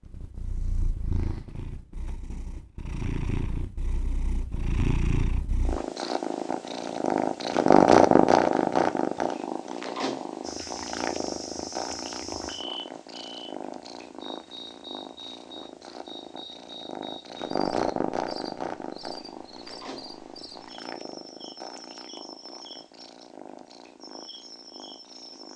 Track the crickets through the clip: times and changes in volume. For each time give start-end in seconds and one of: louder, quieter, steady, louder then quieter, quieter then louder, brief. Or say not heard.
10.4-25.5 quieter.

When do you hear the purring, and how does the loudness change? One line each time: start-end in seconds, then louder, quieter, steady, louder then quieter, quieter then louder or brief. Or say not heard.
0.1-25.5 louder then quieter.